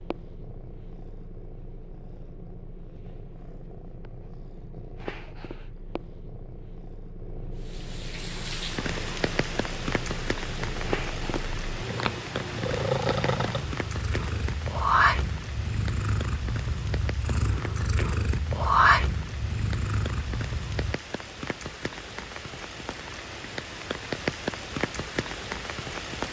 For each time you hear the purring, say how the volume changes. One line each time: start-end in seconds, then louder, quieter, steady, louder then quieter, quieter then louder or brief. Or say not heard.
0.0-20.9 louder.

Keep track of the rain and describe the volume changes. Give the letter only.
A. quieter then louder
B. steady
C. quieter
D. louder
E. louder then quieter
A.